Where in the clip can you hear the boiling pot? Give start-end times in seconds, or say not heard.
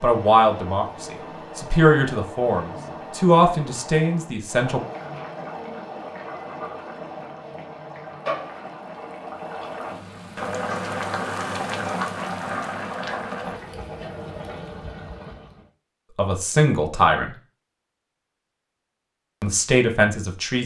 0.0-15.7.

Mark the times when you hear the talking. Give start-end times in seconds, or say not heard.
0.0-4.8, 16.1-17.3, 19.4-20.6.